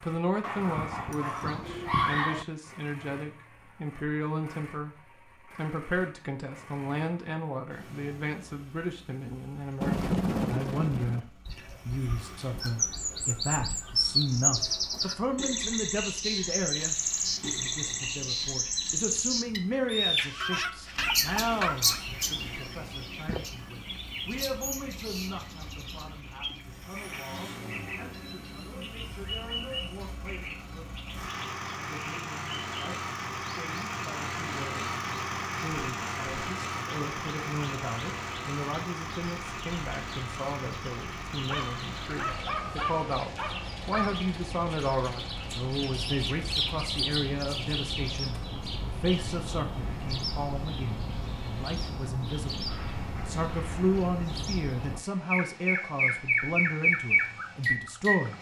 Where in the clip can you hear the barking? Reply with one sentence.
The barking can be heard from 0.4 to 2.5 s, from 20.4 to 22.0 s and from 41.4 to 44.2 s.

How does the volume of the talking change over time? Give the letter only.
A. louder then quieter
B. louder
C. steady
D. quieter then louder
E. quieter
D.